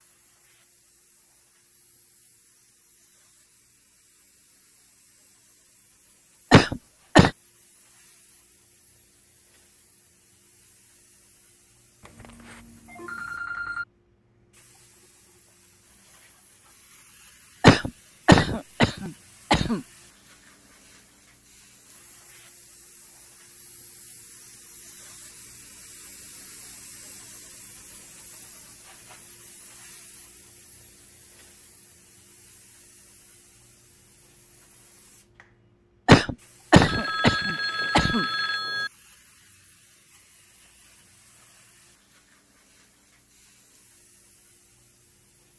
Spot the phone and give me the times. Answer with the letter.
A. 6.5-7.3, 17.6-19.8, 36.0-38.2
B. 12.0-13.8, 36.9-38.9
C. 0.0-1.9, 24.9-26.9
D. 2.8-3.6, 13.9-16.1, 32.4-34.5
B.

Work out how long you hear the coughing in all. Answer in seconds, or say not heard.
5 s.